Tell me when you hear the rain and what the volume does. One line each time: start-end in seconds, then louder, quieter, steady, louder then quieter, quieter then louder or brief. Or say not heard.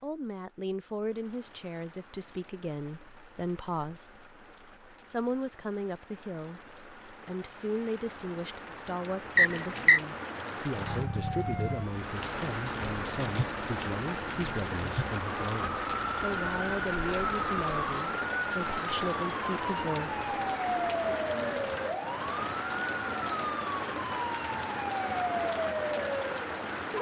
0.0-26.9 louder.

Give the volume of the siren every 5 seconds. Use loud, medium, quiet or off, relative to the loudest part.
off, off, medium, loud, loud, loud.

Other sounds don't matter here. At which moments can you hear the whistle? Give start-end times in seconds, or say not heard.
9.3-10.0.